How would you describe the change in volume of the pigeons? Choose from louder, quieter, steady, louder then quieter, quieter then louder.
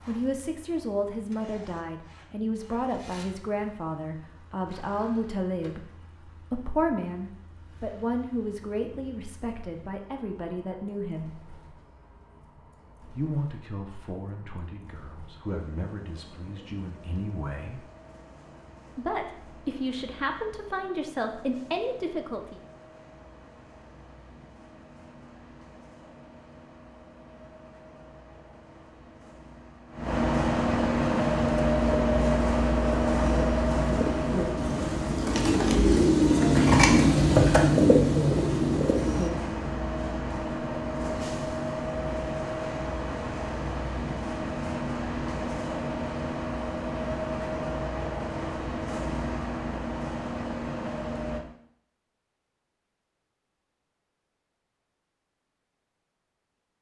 louder.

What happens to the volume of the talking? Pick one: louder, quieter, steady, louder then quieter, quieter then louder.
quieter then louder.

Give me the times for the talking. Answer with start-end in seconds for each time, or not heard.
0.1-11.3, 13.2-17.9, 18.9-22.6.